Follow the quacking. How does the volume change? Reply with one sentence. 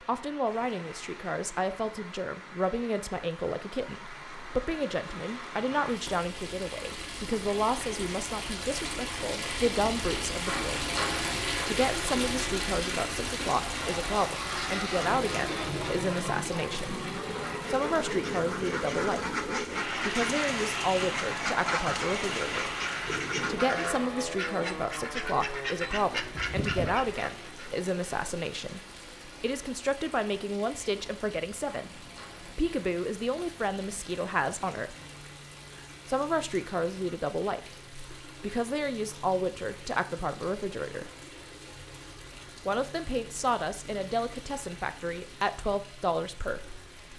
The loudness of the quacking stays about the same.